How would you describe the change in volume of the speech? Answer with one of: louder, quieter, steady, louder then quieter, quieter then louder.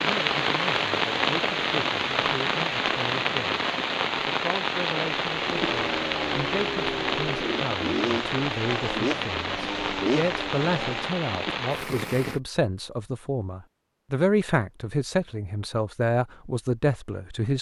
louder.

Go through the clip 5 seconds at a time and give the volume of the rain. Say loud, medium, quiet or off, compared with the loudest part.
loud, loud, medium, off.